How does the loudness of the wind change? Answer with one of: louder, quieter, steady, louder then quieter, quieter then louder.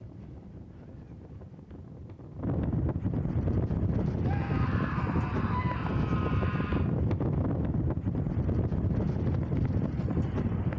louder.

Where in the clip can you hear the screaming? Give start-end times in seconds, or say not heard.
4.2-6.8.